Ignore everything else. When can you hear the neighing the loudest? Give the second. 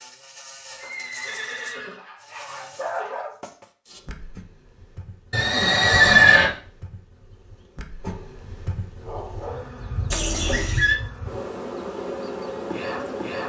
6 s.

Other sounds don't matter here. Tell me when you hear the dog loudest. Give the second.
3 s.